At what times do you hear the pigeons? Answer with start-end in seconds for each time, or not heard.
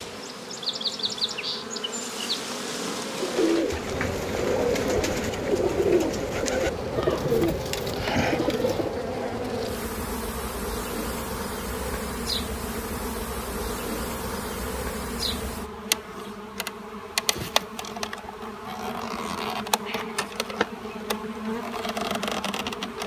3.1-9.1.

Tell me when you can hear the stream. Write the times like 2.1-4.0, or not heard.
not heard.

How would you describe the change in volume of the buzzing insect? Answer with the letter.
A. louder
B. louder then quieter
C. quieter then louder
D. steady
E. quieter
D.